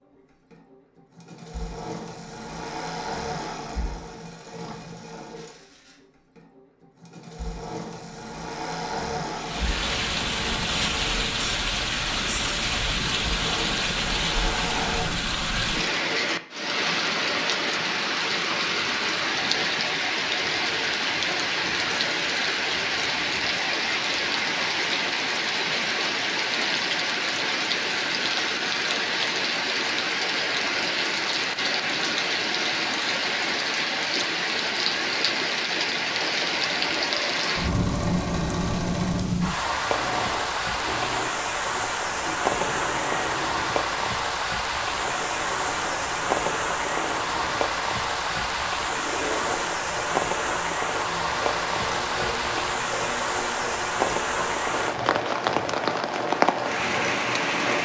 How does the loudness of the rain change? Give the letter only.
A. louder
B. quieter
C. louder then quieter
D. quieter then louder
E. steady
E.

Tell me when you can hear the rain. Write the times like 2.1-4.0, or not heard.
9.3-57.8.